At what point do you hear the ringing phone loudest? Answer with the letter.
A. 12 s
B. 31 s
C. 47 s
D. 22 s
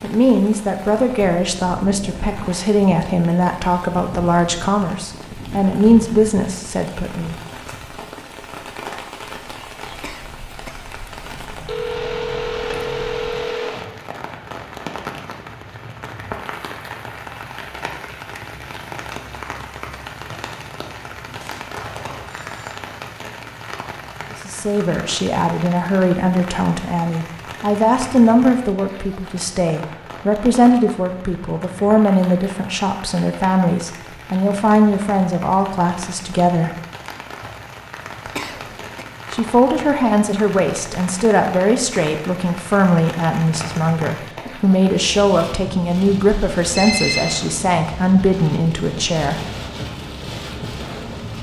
C.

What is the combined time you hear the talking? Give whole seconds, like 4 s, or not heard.
30 s.